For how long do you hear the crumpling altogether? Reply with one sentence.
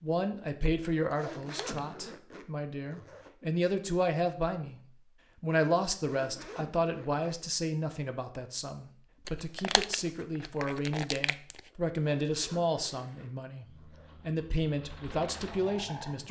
The crumpling can be heard for 3 seconds in total.